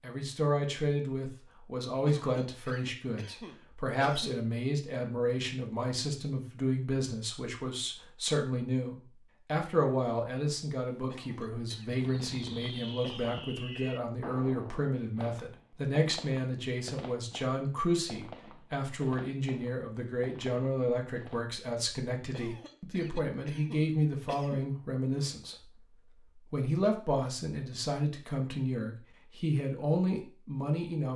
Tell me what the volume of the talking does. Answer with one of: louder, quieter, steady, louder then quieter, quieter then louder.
steady.